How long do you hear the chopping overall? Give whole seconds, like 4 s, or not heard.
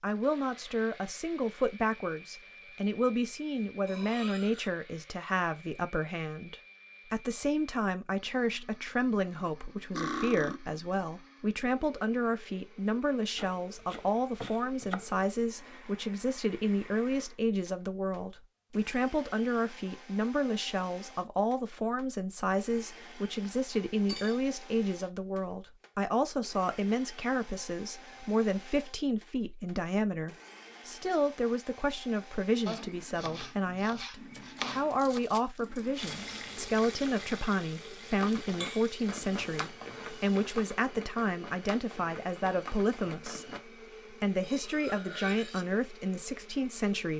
4 s.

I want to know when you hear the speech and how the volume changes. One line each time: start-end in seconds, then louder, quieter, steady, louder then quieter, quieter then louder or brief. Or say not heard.
0.0-47.1 steady.